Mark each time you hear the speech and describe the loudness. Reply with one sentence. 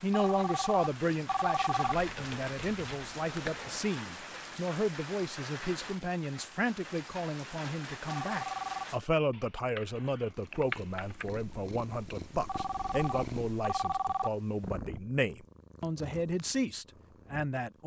The speech can be heard from 0.0 to 17.8 s, at a steady volume.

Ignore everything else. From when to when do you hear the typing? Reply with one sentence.
You can hear the typing from 1.8 to 3.8 s and from 9.3 to 11.3 s.